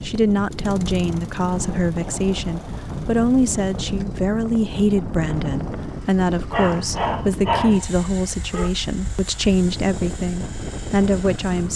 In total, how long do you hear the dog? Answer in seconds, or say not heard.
2 s.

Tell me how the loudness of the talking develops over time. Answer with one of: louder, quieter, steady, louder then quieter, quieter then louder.
steady.